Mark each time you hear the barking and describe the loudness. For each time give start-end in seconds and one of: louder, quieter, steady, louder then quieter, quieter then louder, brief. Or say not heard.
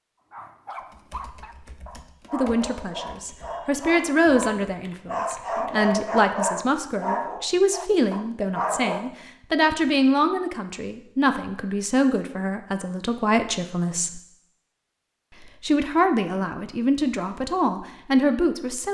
0.3-9.1 louder.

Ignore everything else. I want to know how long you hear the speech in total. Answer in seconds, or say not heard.
15 s.